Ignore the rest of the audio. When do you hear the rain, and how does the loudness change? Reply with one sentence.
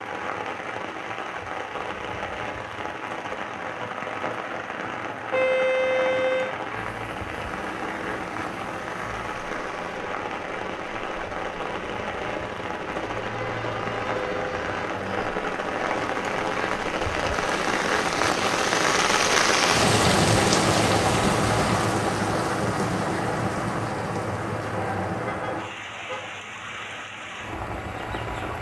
You can hear the rain from 0.0 to 28.5 s, getting louder then quieter.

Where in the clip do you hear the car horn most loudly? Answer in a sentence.
The volume of the car horn peaks at 6 seconds.